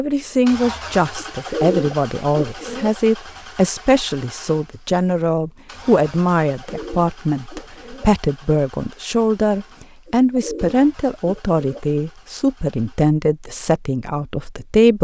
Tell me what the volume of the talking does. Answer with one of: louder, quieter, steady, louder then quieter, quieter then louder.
steady.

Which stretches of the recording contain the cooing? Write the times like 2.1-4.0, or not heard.
1.1-3.0, 6.6-8.1, 10.1-11.8.